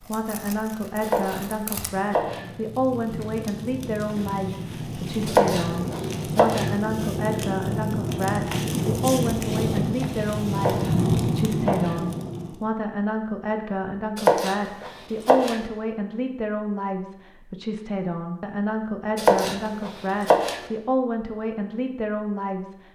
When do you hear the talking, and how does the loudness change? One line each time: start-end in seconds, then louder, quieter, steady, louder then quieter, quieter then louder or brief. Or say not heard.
0.0-22.8 steady.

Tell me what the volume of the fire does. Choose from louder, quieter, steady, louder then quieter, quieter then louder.
louder.